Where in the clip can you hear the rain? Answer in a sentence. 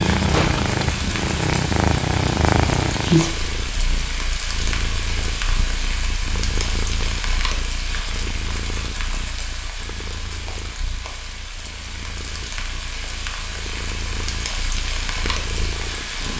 The rain can be heard from 0.0 to 16.3 s.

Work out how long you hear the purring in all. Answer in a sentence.
You can hear the purring for 16 seconds altogether.